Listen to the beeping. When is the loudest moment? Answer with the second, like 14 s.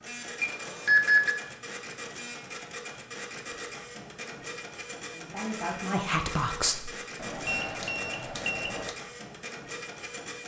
1 s.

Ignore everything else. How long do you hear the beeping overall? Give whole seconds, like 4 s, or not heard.
3 s.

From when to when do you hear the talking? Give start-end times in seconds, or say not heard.
5.1-6.9.